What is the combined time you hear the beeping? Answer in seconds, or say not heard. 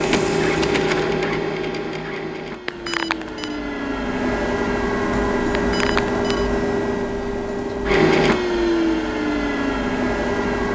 2 s.